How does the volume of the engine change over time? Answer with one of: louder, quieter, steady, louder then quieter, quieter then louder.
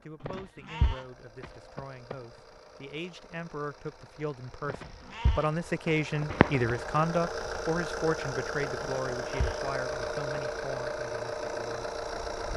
louder.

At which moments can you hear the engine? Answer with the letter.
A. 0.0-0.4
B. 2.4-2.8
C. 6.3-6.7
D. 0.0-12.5
D.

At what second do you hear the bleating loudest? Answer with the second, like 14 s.
1 s.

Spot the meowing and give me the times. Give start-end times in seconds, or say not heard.
6.3-6.7.